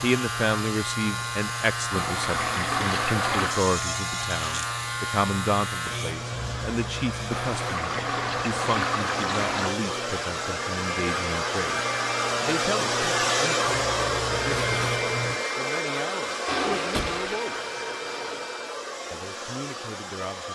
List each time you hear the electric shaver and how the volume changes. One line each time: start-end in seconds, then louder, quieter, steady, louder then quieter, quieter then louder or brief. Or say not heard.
0.0-15.3 quieter then louder.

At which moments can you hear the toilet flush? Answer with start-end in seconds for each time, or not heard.
1.9-3.6, 7.3-9.8, 16.4-18.5.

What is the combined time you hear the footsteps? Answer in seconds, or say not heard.
not heard.